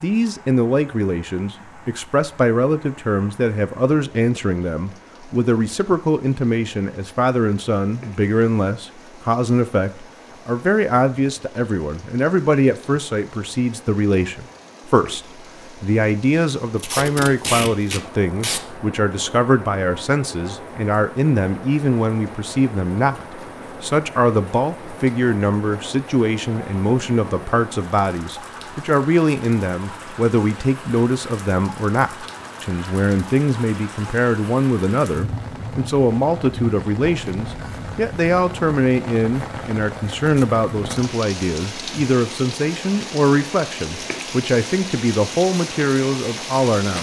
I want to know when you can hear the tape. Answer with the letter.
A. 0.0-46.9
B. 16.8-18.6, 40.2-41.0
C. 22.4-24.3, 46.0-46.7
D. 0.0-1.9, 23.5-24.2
B.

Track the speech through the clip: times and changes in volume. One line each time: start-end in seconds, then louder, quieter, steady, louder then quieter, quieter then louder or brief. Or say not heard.
0.0-46.9 steady.